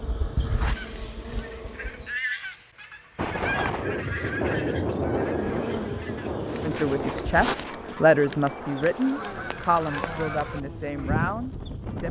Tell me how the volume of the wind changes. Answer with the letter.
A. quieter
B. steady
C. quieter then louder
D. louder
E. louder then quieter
A.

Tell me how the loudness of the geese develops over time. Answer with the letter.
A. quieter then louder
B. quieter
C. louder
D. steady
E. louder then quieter
A.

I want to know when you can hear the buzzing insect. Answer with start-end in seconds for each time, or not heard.
0.0-2.1, 5.2-12.0.